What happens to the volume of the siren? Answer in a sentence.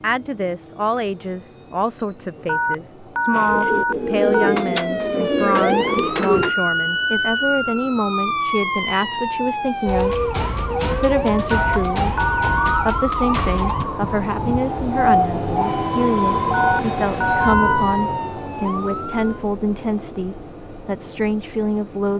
The loudness of the siren stays about the same.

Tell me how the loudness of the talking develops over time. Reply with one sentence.
The volume of the talking stays about the same.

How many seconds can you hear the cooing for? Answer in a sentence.
You can hear the cooing for 3 seconds altogether.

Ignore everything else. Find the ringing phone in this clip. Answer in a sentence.
You can hear the ringing phone from 2.5 to 4.5 s, from 11.5 to 12.9 s and from 16.5 to 17.9 s.